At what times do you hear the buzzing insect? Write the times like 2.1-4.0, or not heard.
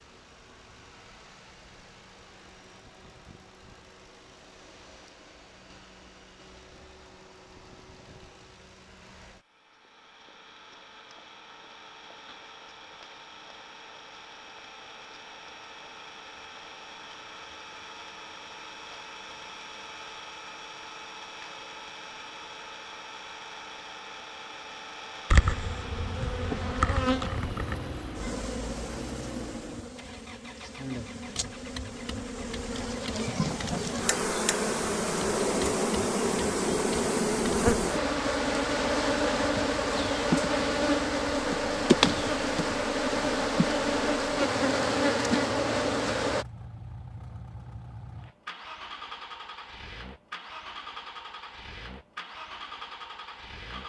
25.3-46.5.